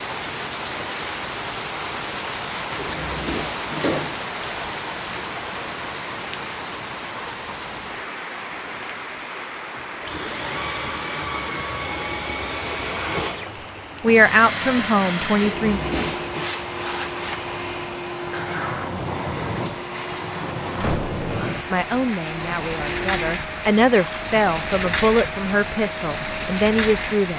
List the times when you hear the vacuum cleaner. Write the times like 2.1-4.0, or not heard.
9.8-27.3.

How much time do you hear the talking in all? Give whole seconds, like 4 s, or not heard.
8 s.